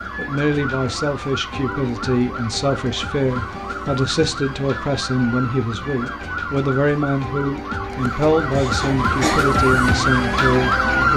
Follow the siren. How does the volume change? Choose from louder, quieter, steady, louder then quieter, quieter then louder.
louder.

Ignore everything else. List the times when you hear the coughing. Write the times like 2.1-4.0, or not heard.
7.9-9.5.